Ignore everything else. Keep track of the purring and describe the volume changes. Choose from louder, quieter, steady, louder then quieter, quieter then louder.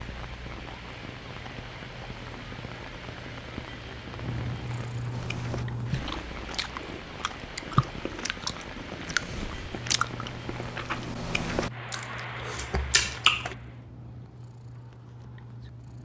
louder then quieter.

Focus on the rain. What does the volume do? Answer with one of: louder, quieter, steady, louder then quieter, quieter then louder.
steady.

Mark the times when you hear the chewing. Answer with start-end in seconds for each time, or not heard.
5.1-13.6.